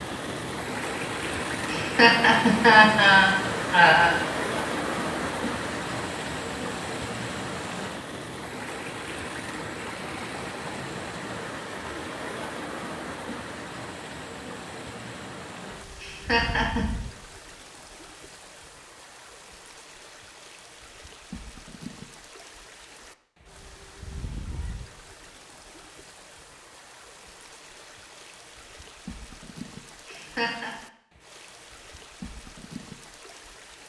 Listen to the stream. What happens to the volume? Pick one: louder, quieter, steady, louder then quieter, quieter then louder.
quieter.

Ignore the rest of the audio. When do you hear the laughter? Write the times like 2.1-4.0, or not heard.
1.7-4.2, 16.0-16.9, 30.1-30.8.